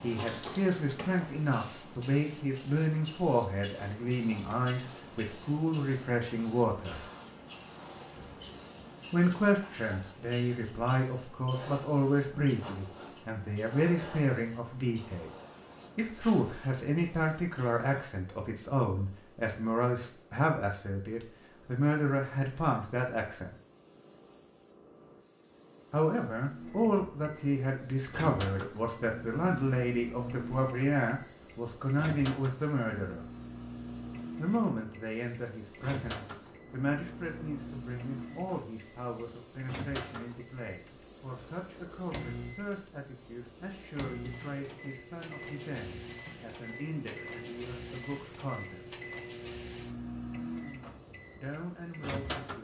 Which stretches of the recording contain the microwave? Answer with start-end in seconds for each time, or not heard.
26.4-52.6.